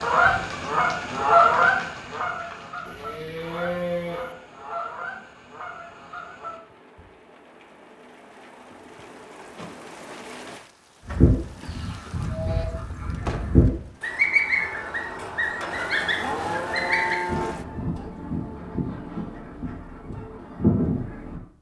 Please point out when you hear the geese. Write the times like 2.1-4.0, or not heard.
0.0-7.0, 11.1-21.4.